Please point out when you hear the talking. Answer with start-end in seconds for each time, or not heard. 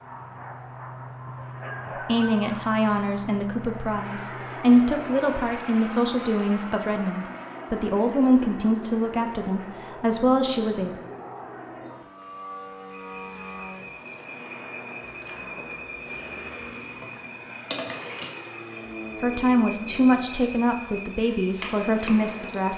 1.9-11.0, 19.2-22.7.